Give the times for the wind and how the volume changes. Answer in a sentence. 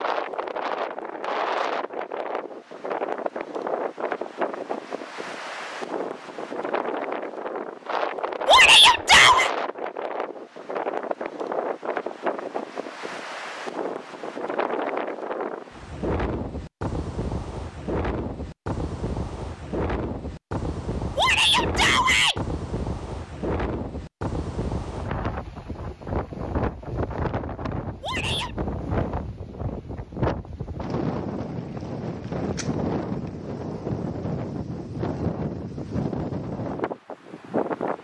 You can hear the wind from 0.0 to 38.0 s, at a steady volume.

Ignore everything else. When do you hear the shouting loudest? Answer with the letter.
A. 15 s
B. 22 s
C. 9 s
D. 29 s
C.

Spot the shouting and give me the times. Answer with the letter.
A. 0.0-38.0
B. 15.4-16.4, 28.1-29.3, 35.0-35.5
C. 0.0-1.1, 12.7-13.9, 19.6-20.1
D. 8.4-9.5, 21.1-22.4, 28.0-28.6
D.